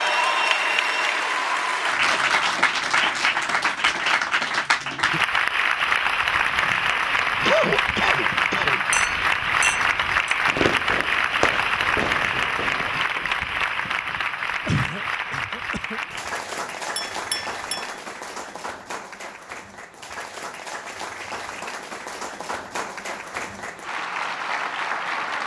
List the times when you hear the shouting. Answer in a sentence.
You can't hear the shouting here.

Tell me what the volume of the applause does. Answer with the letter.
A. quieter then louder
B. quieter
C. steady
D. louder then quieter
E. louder
B.